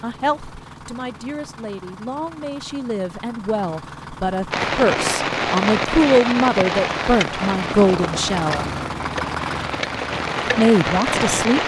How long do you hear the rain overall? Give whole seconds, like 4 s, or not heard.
7 s.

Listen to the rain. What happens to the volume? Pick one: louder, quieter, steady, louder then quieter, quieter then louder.
quieter then louder.